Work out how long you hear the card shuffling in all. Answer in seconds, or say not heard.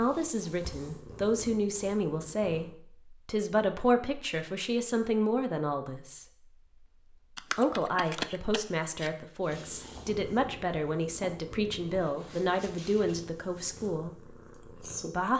2 s.